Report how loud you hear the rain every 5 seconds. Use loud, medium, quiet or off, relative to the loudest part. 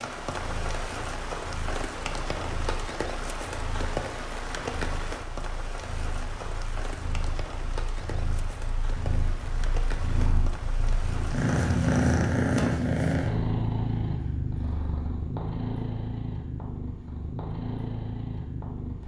loud, medium, medium, off.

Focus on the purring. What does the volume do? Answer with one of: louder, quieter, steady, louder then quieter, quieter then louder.
louder then quieter.